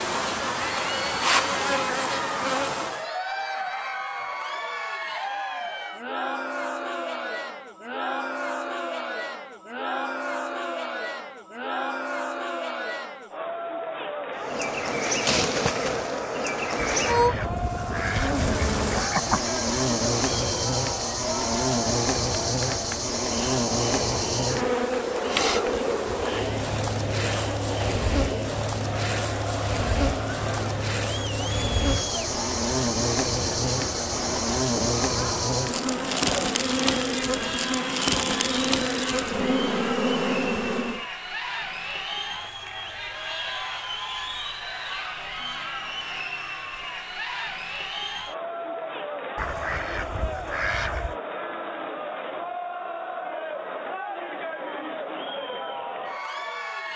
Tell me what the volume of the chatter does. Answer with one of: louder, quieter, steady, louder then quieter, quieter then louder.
steady.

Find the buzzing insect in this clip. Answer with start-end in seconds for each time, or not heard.
0.0-3.1, 14.3-41.0.